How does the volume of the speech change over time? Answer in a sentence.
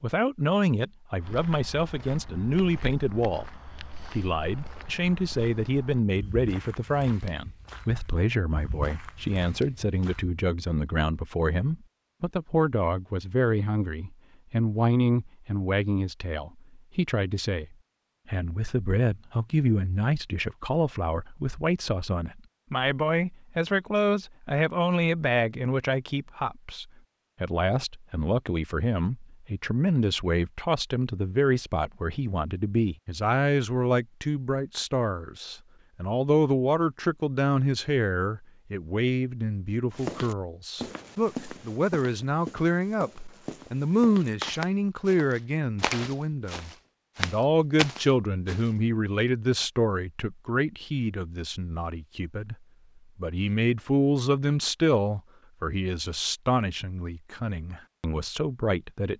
The volume of the speech stays about the same.